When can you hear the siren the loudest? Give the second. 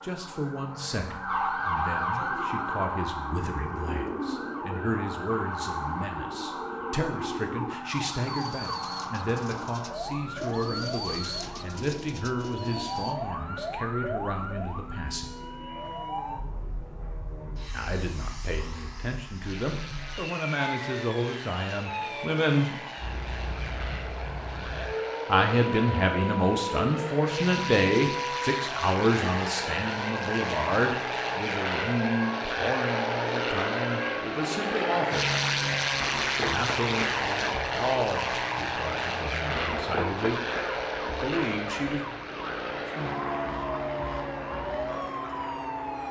2 s.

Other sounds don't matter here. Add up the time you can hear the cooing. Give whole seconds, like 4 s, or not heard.
11 s.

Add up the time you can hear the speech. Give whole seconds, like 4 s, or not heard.
35 s.